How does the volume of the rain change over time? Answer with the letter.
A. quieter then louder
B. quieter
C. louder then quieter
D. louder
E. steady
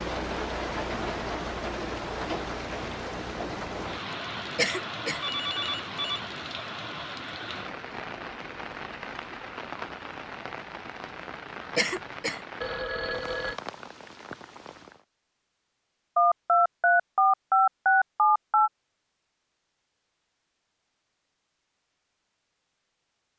B.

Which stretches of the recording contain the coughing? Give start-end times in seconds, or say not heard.
4.5-5.2, 11.8-12.4.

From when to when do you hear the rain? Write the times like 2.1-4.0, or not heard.
0.0-15.1.